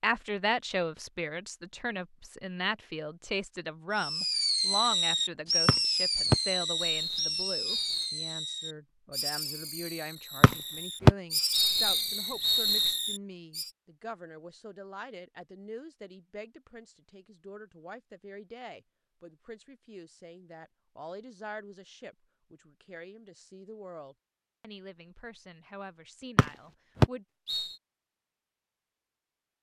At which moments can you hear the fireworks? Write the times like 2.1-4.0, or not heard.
4.0-13.7.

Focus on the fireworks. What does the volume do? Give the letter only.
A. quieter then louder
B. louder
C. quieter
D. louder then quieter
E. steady
C.